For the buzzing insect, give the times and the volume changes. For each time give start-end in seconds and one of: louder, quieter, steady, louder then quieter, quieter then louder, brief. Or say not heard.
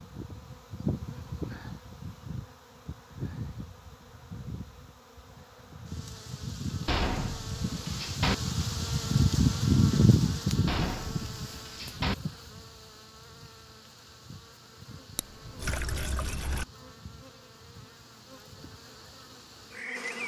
0.0-20.2 louder then quieter.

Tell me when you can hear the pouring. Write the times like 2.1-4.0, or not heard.
15.2-16.6.